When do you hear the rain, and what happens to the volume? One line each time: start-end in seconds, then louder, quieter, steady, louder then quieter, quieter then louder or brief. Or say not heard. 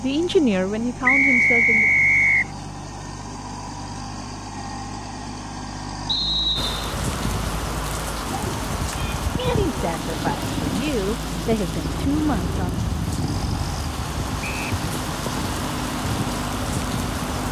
6.5-17.4 steady.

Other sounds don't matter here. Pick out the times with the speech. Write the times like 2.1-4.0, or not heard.
0.0-1.9, 9.3-12.6.